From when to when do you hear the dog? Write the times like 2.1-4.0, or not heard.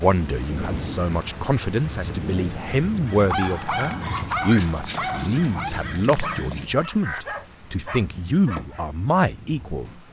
3.1-8.8.